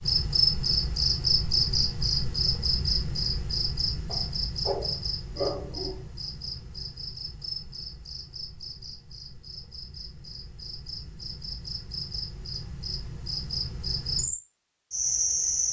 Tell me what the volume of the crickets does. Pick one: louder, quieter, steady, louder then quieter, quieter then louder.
quieter then louder.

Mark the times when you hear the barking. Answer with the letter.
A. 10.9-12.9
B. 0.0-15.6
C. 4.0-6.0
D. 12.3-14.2
C.